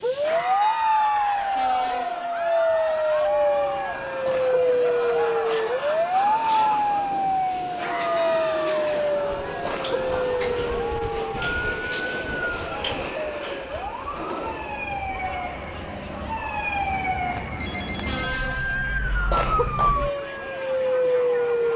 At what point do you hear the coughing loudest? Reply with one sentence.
The volume of the coughing peaks at 19 seconds.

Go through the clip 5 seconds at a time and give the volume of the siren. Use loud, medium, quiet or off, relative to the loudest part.
loud, loud, medium, medium, loud.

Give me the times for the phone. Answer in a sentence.
You can hear the phone from 16.9 to 18.4 s.